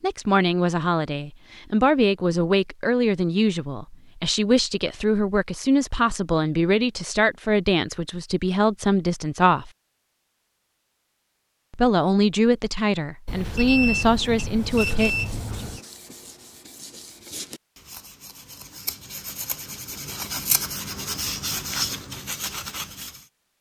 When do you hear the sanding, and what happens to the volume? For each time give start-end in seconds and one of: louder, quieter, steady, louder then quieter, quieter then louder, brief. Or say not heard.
14.6-23.2 louder.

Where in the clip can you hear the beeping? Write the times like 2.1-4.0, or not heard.
13.2-15.8.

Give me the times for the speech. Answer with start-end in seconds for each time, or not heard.
0.0-9.7, 11.7-15.6.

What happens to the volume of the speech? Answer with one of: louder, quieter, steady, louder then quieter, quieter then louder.
steady.